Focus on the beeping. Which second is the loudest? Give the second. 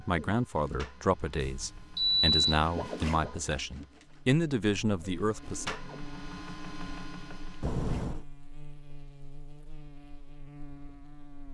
2 s.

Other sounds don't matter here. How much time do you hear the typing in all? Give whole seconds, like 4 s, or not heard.
not heard.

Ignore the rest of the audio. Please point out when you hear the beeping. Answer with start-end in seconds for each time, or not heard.
1.4-2.6, 7.6-8.2.